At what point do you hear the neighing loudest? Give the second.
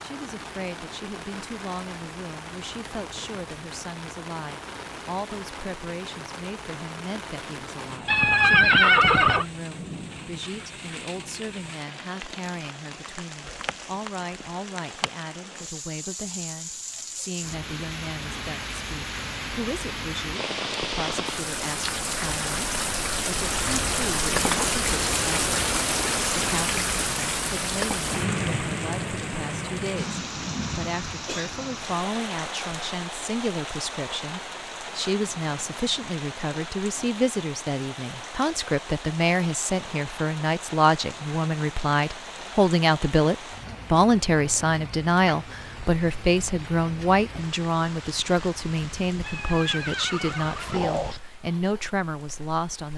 9 s.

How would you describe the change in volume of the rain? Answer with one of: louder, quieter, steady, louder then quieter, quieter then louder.
louder then quieter.